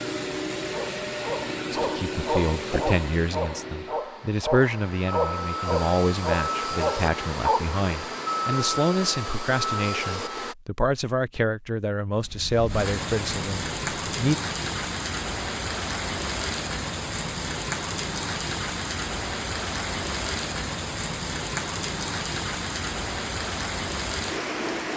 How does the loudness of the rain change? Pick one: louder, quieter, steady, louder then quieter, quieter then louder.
steady.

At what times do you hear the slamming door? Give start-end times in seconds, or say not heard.
not heard.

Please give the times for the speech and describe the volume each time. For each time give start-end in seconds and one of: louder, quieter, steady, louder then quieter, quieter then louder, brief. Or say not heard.
1.8-14.4 steady.